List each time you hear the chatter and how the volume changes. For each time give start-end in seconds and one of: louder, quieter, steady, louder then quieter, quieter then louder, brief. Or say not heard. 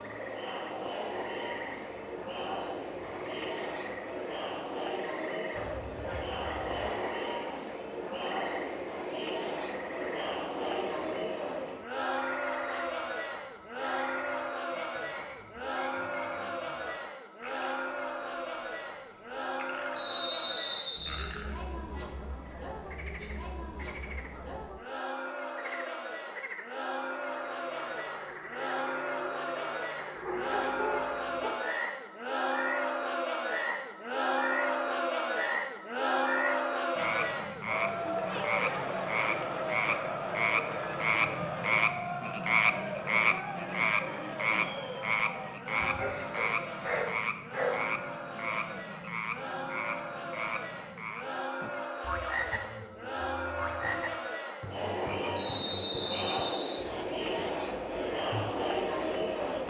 0.0-59.6 steady.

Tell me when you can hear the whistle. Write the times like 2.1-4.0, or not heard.
19.9-21.4, 55.4-56.9.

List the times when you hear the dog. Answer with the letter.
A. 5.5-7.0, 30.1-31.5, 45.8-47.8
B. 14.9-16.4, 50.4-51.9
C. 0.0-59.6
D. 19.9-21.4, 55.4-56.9
A.